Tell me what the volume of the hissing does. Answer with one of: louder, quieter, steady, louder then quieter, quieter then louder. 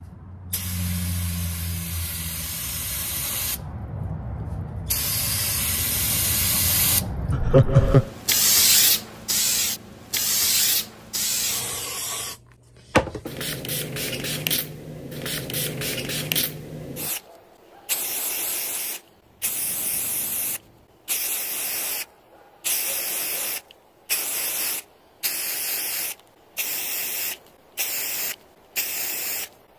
louder then quieter.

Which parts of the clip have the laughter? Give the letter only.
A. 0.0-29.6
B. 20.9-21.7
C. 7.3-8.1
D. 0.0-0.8
C.